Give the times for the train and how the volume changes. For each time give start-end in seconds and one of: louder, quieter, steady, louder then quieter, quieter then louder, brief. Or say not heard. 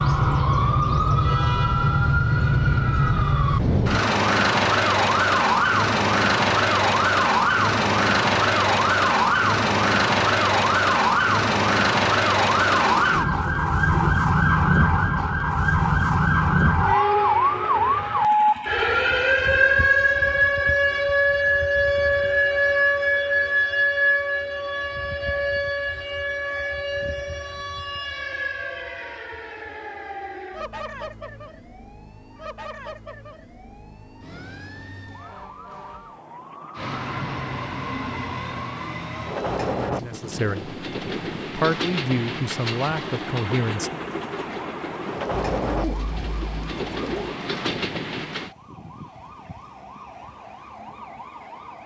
36.8-48.5 steady.